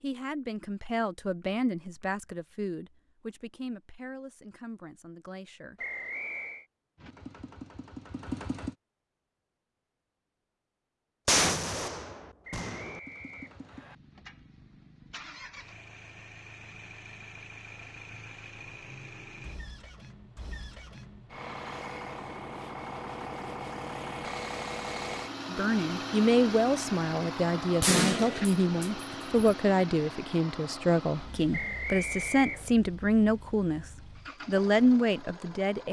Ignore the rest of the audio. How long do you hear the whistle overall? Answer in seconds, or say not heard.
4 s.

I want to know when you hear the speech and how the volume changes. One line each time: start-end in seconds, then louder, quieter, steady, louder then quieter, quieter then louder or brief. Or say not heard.
0.0-5.8 quieter
25.5-33.9 steady
34.5-35.8 brief.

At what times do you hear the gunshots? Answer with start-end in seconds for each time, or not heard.
11.2-13.0, 27.8-29.6.